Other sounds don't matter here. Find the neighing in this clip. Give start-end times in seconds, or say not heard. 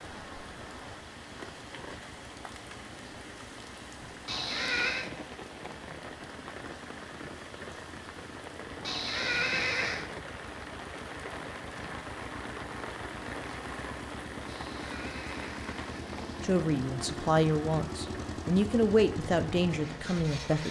4.2-5.1, 8.8-10.1, 14.4-16.5.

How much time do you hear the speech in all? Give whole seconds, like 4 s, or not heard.
4 s.